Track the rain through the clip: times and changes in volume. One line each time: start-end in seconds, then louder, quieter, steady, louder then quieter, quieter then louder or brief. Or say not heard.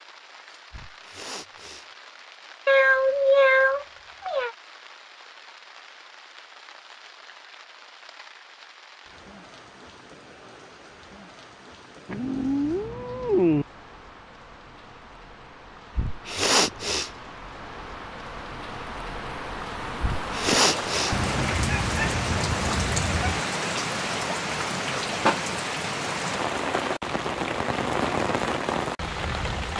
0.0-29.7 louder.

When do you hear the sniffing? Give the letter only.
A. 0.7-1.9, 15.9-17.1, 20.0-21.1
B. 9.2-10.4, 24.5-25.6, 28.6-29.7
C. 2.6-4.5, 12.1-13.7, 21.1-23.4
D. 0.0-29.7
A.